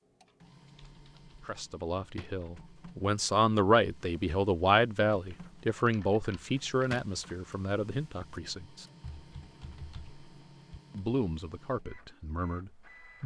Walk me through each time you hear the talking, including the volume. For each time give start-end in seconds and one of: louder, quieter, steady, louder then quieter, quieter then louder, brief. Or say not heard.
1.4-8.8 louder then quieter
10.9-13.2 brief.